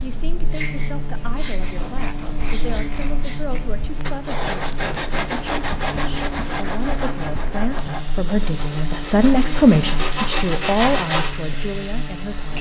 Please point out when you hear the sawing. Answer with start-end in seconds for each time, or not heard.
1.6-11.3.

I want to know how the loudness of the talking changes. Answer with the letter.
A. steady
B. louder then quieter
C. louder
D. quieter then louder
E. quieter
B.